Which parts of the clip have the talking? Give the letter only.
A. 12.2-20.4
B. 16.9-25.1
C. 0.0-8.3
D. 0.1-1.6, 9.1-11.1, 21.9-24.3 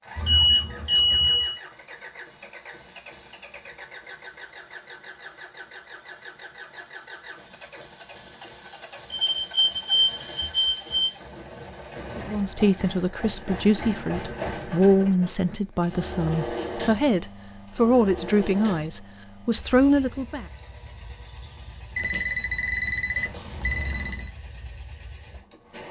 A.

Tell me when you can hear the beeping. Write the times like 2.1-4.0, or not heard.
0.1-1.6, 9.1-11.1, 21.9-24.3.